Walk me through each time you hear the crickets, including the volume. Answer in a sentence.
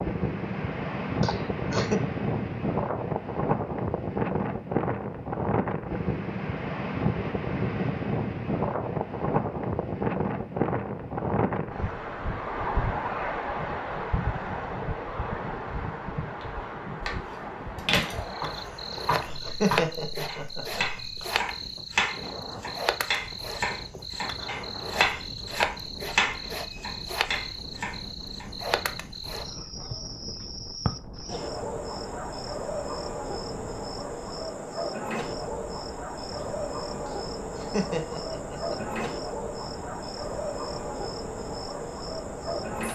You can hear the crickets from 18.2 to 42.9 s, at a steady volume.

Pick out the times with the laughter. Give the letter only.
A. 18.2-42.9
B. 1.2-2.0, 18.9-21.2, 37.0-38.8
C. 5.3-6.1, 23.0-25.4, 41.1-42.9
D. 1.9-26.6
B.